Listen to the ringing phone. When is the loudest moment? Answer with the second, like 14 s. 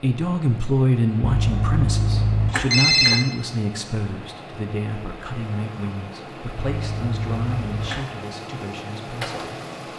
3 s.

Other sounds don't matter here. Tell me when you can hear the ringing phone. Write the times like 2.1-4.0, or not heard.
1.2-3.2, 6.7-8.1.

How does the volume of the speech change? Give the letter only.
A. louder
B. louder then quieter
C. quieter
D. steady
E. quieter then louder
C.